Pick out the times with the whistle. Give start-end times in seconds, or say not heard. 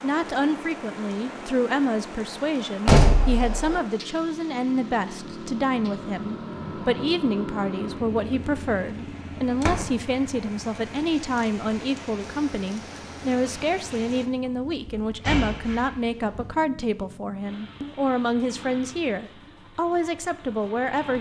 not heard.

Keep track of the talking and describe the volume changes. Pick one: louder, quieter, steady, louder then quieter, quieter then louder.
steady.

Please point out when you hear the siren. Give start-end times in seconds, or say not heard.
not heard.